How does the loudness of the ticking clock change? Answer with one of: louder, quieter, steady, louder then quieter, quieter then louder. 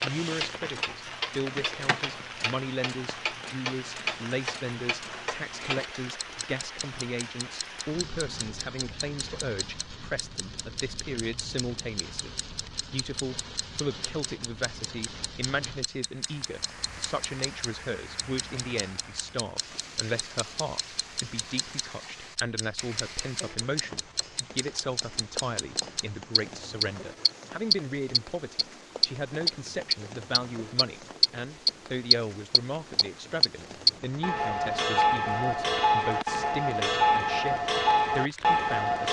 quieter then louder.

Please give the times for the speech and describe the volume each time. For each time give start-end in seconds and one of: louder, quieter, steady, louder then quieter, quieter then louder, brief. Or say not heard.
0.0-39.0 steady.